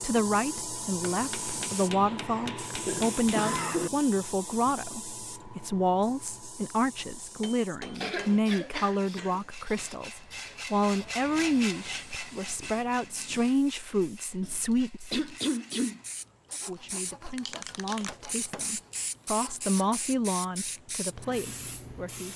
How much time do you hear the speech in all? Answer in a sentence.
The speech can be heard for 21 seconds in total.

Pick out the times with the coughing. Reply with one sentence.
You can hear the coughing from 2.1 to 3.9 s, from 8.0 to 9.9 s and from 15.1 to 16.0 s.